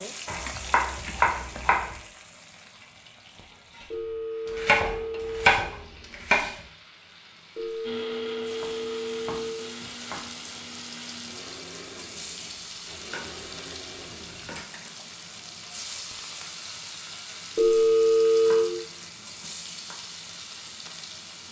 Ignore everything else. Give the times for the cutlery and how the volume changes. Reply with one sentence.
The cutlery can't be heard in this clip.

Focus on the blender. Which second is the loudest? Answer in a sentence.
The volume of the blender peaks at 8 seconds.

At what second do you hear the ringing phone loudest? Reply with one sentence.
The loudest moment of the ringing phone is at 18 seconds.